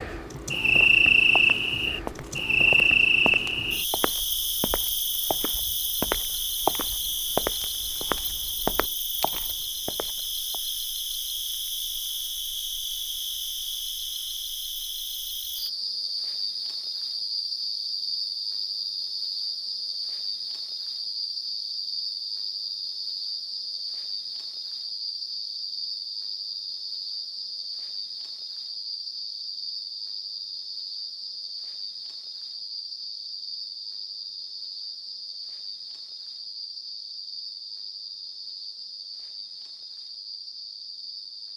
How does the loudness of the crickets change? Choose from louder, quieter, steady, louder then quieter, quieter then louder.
quieter.